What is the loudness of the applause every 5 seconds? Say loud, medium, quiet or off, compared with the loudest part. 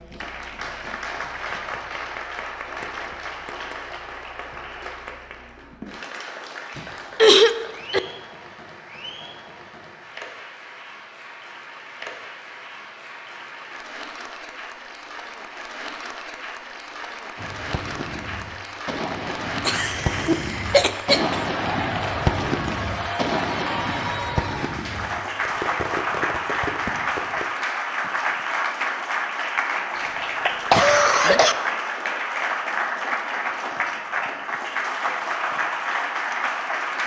medium, quiet, quiet, medium, loud, loud, loud, loud.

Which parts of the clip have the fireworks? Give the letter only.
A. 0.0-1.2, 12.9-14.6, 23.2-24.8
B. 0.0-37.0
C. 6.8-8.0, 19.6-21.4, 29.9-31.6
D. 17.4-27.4
D.